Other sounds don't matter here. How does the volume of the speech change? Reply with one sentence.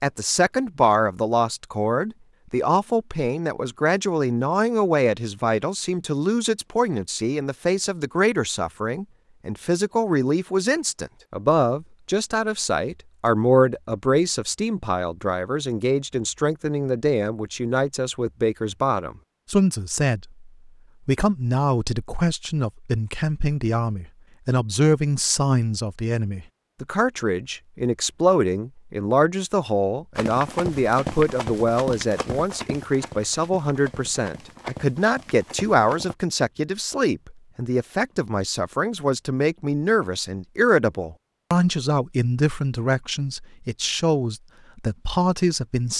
The volume of the speech stays about the same.